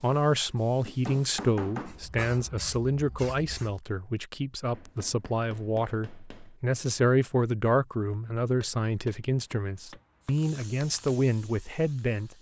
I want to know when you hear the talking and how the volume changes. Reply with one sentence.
You can hear the talking from 0.0 to 12.3 s, at a steady volume.